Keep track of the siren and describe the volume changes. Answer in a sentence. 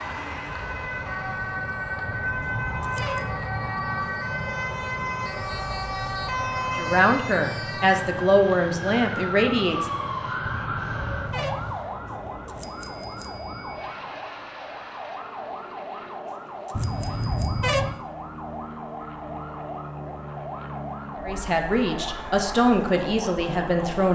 The loudness of the siren goes down.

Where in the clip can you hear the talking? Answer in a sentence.
You can hear the talking from 6.8 to 10.0 s and from 21.2 to 24.1 s.